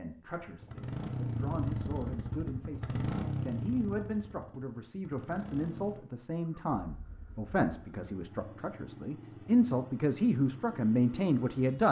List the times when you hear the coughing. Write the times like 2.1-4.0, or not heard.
not heard.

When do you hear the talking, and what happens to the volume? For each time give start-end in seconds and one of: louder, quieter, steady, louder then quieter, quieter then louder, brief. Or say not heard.
0.0-11.8 louder.